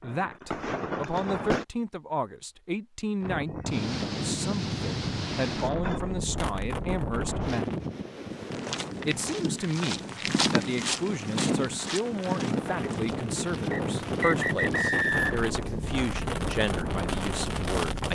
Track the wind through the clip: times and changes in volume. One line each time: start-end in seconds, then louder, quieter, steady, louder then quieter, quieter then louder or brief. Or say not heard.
3.2-18.1 quieter then louder.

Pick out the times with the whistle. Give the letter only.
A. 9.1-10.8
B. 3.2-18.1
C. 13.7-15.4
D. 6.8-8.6
C.